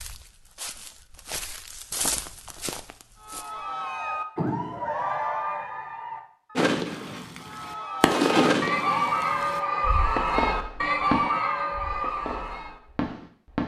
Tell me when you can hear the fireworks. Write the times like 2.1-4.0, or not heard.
6.5-13.6.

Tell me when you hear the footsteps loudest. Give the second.
2 s.